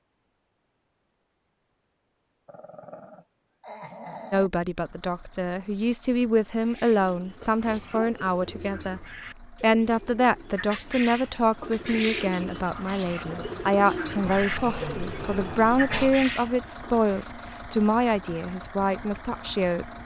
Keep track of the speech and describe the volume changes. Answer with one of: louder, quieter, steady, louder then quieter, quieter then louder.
steady.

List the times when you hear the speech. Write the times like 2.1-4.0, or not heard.
4.3-19.9.